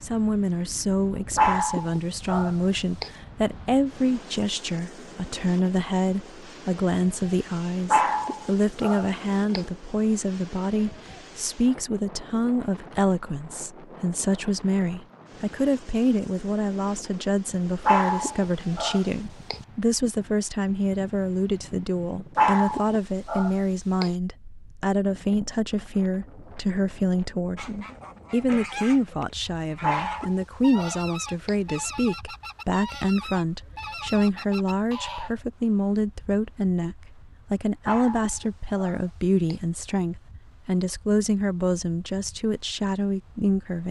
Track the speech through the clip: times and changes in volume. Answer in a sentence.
The speech can be heard from 0.0 to 43.8 s, at a steady volume.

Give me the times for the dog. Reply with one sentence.
The dog can be heard from 1.4 to 3.1 s, from 7.9 to 9.7 s, from 17.9 to 19.6 s, from 22.4 to 24.1 s, from 29.8 to 31.6 s and from 37.9 to 39.6 s.